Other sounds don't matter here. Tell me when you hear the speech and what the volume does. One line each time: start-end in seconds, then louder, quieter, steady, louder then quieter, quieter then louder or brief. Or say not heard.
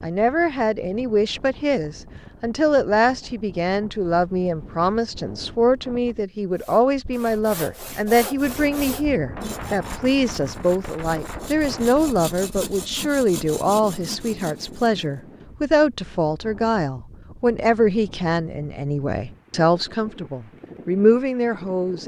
0.0-22.0 steady.